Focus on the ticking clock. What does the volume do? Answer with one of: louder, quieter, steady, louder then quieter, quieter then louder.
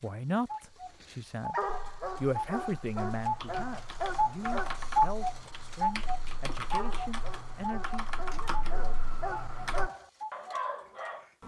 louder then quieter.